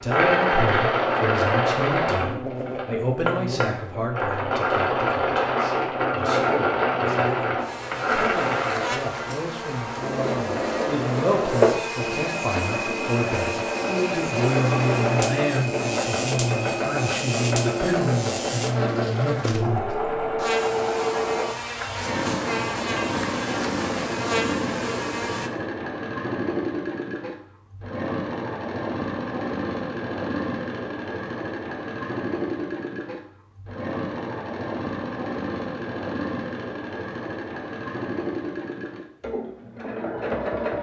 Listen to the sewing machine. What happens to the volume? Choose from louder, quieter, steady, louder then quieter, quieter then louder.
quieter.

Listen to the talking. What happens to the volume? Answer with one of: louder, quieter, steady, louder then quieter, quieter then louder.
quieter then louder.